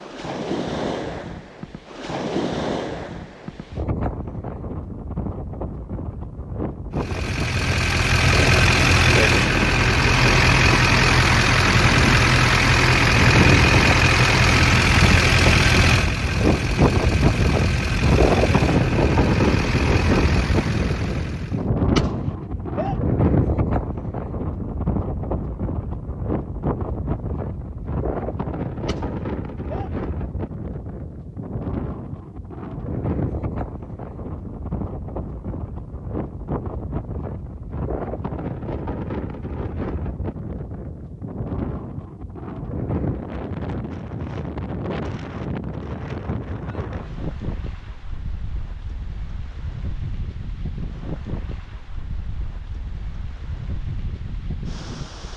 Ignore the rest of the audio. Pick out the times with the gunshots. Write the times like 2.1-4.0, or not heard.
21.9-22.9, 28.9-29.9.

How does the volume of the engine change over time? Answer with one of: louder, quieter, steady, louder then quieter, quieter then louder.
quieter.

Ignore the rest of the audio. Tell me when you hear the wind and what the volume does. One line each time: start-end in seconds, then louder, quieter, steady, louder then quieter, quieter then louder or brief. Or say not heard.
0.0-55.3 louder then quieter.